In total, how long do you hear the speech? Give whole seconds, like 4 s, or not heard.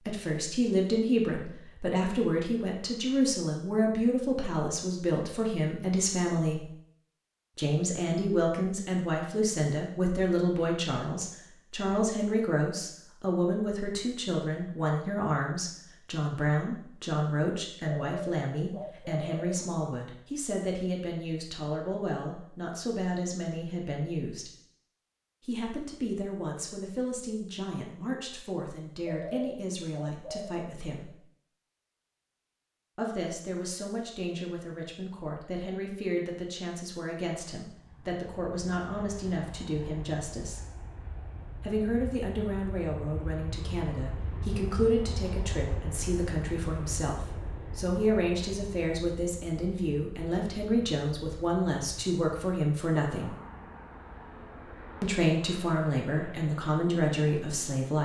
52 s.